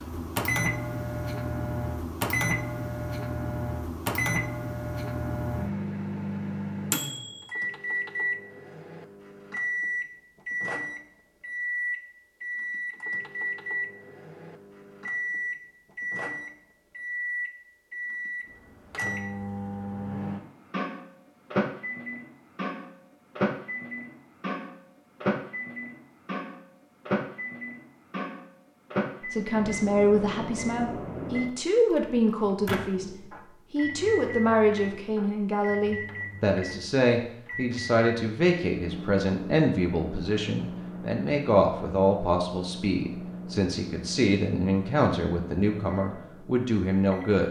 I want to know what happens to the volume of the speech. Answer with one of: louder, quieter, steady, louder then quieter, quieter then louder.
steady.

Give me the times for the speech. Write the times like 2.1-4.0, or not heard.
29.3-47.4.